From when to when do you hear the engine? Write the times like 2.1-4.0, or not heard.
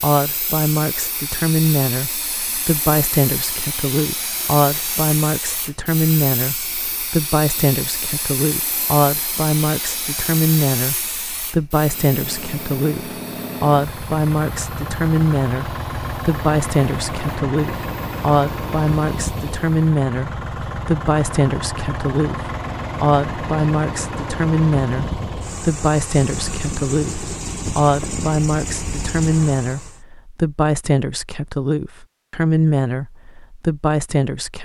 11.8-30.0.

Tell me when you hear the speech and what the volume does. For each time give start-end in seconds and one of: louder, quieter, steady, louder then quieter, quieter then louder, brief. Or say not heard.
0.0-34.6 steady.